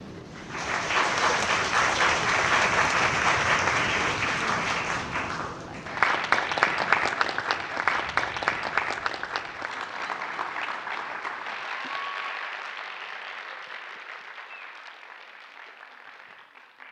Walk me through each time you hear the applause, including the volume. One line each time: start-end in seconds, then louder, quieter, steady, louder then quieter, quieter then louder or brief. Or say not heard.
0.0-16.8 quieter.